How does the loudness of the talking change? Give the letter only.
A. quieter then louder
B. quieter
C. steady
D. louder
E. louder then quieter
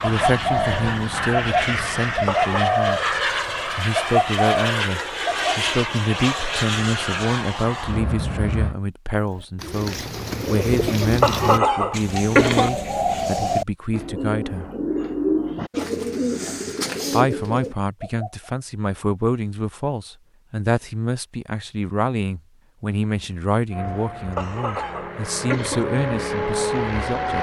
C.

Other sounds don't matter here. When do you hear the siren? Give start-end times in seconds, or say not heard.
not heard.